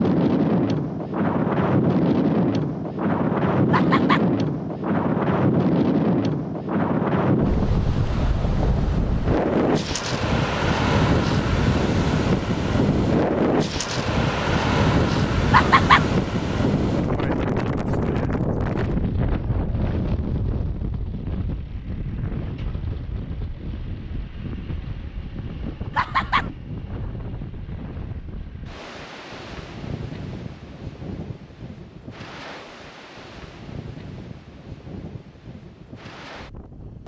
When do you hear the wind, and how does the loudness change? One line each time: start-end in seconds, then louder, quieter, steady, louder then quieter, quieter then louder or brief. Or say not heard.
0.0-37.0 quieter.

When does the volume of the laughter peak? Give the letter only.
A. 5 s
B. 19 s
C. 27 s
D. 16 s
D.